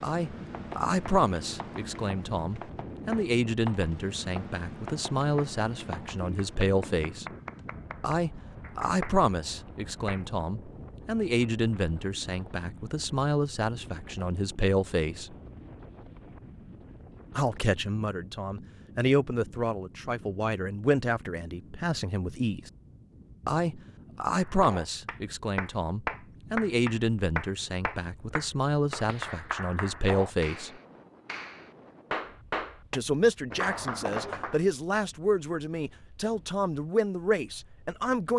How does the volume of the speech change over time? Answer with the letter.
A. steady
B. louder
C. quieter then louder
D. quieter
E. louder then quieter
A.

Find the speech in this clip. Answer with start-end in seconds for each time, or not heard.
0.0-7.2, 8.0-15.3, 17.4-22.7, 23.4-30.7, 32.9-38.3.